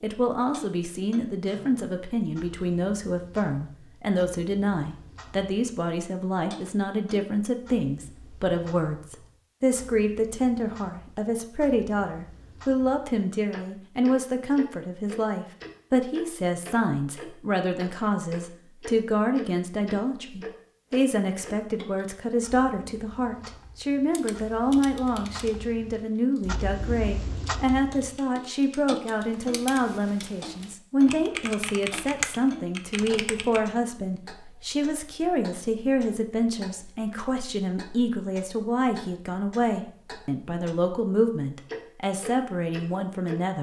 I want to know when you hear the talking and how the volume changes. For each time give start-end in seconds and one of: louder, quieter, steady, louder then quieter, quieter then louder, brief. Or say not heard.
0.0-43.5 steady.